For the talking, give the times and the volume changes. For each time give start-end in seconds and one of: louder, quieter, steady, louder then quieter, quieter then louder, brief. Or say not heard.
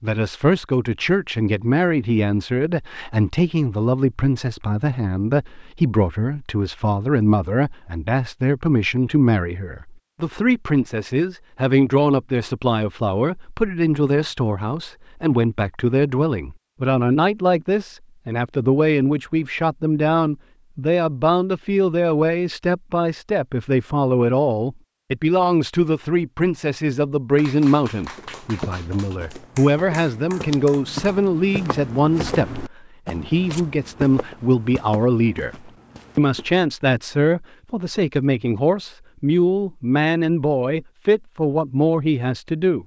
0.0-42.8 steady.